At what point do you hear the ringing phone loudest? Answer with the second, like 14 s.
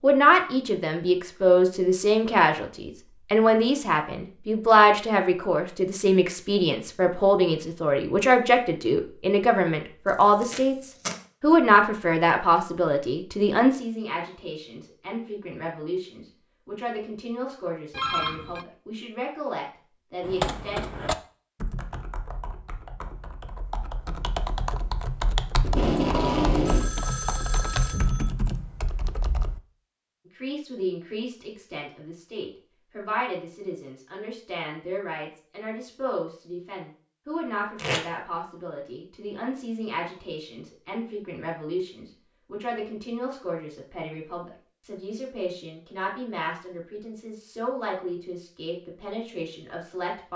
18 s.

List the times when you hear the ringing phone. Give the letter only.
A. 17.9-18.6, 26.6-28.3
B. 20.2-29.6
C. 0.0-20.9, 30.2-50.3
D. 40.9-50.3
A.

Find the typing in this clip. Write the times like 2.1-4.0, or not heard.
20.2-29.6.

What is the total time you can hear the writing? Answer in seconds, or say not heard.
not heard.